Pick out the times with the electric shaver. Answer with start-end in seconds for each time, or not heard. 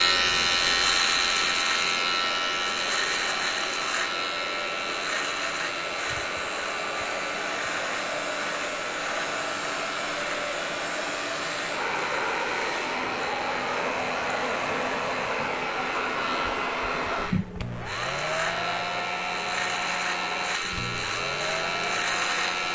0.0-22.7.